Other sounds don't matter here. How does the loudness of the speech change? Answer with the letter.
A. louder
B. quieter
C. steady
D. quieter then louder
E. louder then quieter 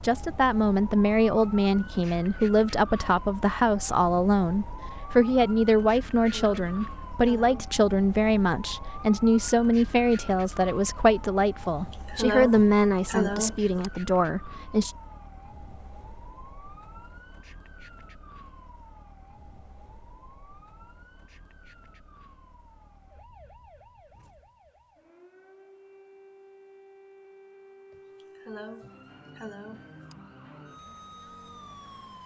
C.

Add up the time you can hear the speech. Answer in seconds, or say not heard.
15 s.